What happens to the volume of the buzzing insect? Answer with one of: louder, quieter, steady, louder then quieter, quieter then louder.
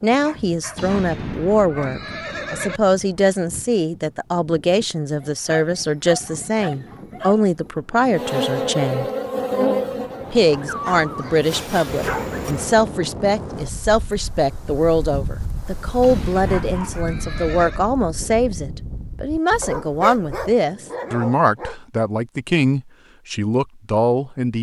quieter then louder.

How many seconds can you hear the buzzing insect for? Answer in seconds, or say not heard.
5 s.